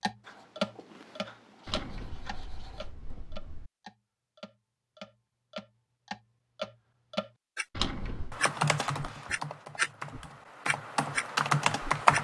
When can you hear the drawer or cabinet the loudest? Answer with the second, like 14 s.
8 s.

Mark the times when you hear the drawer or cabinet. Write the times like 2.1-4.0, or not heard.
1.6-3.7, 7.7-8.4.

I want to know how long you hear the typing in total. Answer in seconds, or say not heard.
4 s.